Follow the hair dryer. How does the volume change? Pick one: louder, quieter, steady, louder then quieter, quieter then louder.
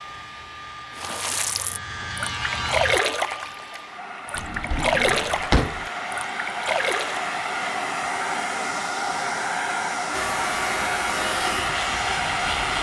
louder.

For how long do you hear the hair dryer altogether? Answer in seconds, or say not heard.
13 s.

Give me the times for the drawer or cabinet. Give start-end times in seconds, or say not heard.
4.3-5.8.